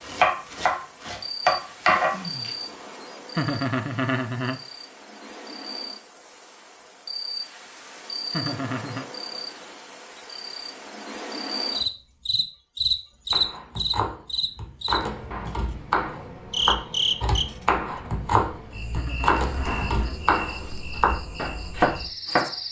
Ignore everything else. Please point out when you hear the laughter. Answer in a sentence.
You can hear the laughter from 3.4 to 4.6 s, from 8.3 to 9.1 s and from 18.9 to 20.1 s.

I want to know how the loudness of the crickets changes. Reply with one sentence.
The loudness of the crickets goes up, then down.